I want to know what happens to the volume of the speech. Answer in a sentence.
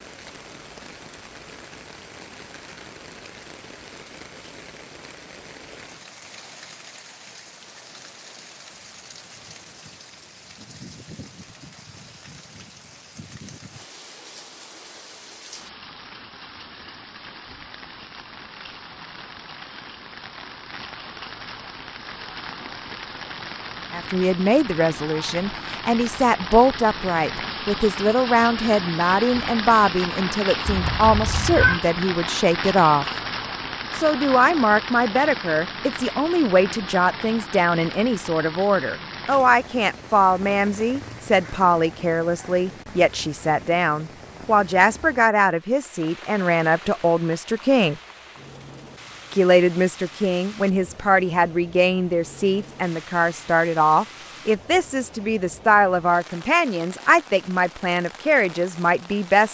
The volume of the speech stays about the same.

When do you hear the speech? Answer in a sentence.
The speech can be heard from 23.9 to 33.0 s, from 34.0 to 48.0 s and from 49.3 to 59.4 s.